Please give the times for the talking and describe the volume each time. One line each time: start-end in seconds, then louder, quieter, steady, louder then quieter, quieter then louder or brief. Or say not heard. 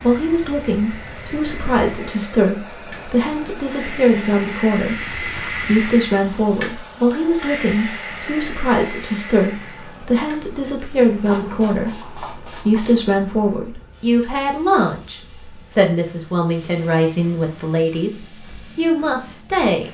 0.0-19.8 steady.